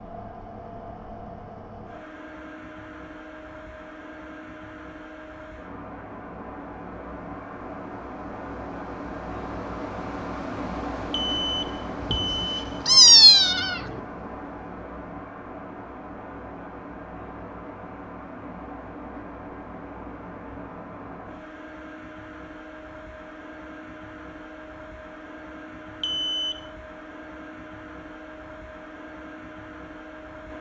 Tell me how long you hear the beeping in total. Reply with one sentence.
The beeping can be heard for 3 seconds in total.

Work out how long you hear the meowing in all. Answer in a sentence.
You can hear the meowing for 2 seconds altogether.